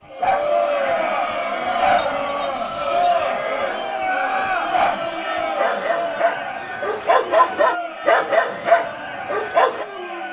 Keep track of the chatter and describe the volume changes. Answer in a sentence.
The volume of the chatter goes down.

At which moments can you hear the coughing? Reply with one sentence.
The coughing can't be heard in this clip.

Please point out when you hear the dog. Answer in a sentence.
You can hear the dog from 0.2 to 3.1 s and from 4.0 to 9.8 s.